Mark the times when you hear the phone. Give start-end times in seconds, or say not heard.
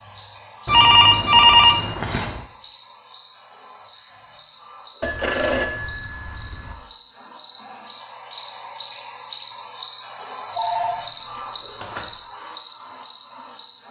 0.7-2.4, 5.0-6.8, 10.6-12.1.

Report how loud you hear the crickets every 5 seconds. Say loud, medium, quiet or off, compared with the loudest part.
medium, loud, loud.